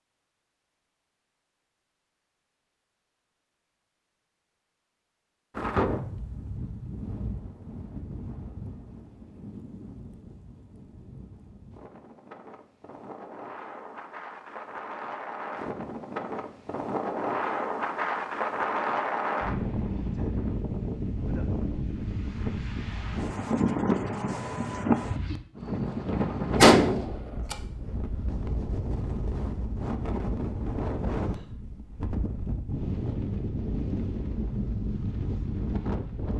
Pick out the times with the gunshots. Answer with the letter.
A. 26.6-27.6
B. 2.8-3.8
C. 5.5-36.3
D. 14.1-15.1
A.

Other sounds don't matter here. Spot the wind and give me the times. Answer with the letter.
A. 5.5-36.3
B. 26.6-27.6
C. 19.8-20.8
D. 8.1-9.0
A.